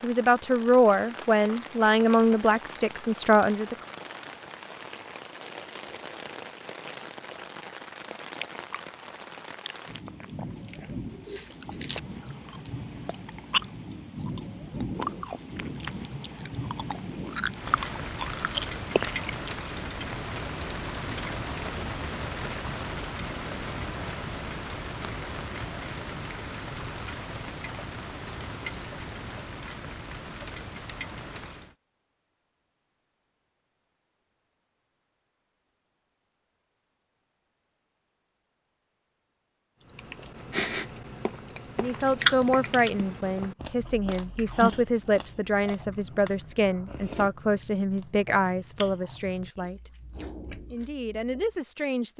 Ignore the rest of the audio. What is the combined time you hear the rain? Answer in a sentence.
The rain can be heard for 32 seconds in total.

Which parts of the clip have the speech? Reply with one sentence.
You can hear the speech from 0.0 to 3.8 s, from 41.8 to 49.9 s and from 50.7 to 52.1 s.